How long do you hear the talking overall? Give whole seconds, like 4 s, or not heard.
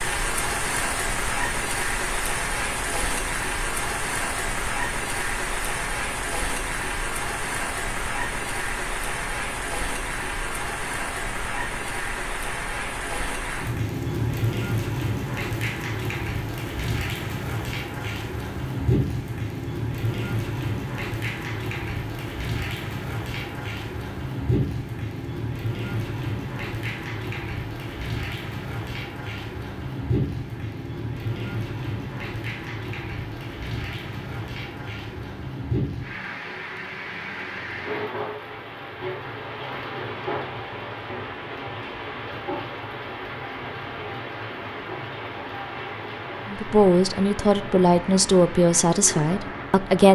4 s.